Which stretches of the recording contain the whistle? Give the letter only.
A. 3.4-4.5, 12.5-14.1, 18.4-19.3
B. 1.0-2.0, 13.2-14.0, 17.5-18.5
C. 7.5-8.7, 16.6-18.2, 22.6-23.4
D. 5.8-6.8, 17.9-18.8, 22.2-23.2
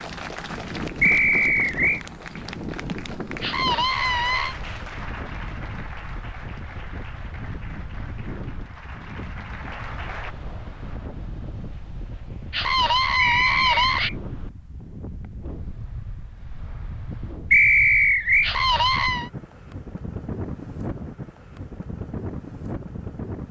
B.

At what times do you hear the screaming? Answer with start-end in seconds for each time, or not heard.
3.4-4.5, 12.5-14.1, 18.4-19.3.